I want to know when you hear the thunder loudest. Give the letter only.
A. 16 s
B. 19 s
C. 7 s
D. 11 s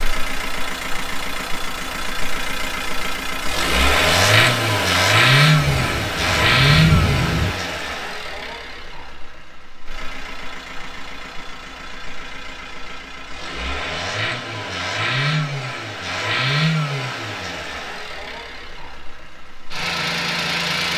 C.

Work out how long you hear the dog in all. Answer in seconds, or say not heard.
not heard.